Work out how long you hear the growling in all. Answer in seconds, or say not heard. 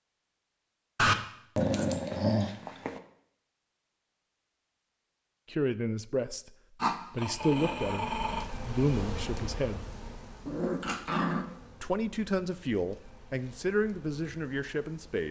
5 s.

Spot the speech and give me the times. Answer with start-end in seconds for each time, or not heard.
5.5-6.5, 7.1-9.8, 11.8-15.2.